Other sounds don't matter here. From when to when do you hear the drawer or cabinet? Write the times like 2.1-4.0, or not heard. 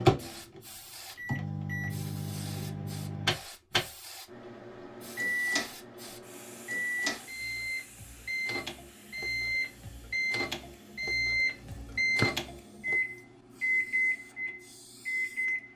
11.7-12.3.